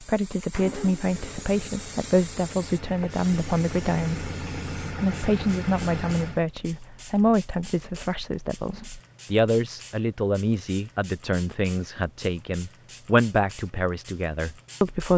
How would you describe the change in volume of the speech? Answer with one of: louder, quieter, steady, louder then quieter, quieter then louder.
steady.